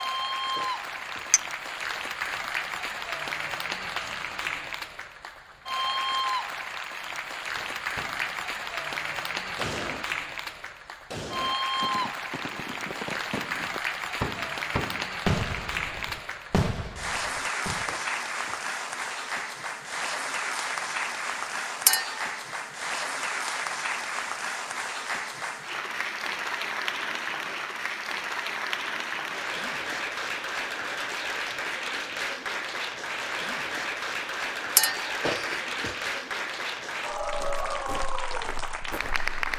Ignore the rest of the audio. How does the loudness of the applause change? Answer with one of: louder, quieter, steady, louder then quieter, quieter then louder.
steady.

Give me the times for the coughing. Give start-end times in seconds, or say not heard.
0.6-1.4, 17.9-18.7, 35.2-36.1.